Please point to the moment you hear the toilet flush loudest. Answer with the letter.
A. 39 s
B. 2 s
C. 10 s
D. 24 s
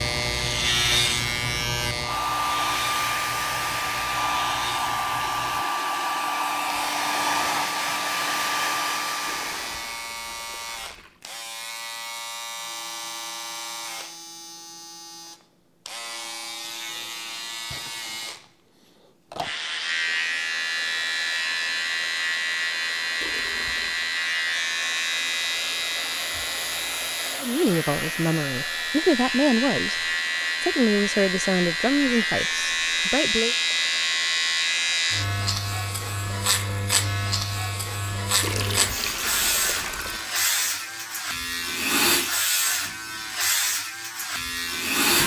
A.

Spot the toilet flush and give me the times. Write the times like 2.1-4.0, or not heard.
9.2-11.2, 23.2-24.1, 38.4-40.2.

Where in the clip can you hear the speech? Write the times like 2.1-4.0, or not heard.
27.4-30.0, 30.6-33.5.